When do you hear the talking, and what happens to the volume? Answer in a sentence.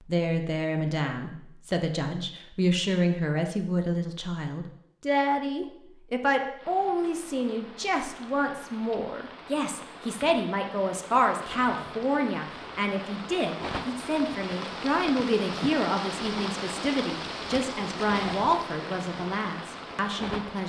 You can hear the talking from 0.0 to 20.6 s, at a steady volume.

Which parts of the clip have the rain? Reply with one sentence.
The rain can be heard from 6.5 to 20.6 s.